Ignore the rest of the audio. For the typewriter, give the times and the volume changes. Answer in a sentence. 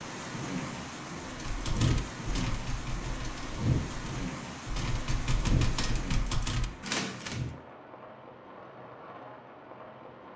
You can hear the typewriter from 1.2 to 7.5 s, getting quieter then louder.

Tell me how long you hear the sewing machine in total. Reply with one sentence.
You can't hear the sewing machine here.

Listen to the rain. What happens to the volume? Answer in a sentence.
The volume of the rain goes down.